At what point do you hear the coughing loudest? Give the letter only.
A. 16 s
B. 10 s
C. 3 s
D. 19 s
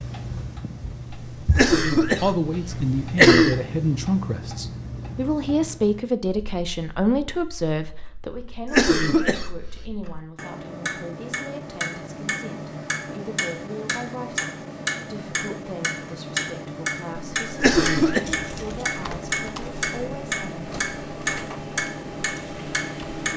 C.